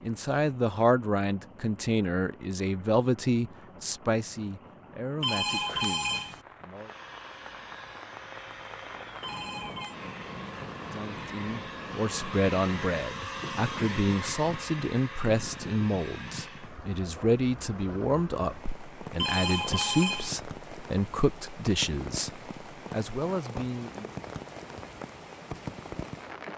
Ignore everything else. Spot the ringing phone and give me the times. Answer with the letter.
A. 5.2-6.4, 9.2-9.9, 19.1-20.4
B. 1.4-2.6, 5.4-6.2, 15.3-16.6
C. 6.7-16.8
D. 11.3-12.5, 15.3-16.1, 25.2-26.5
A.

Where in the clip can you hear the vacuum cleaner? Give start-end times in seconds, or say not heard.
6.7-16.8.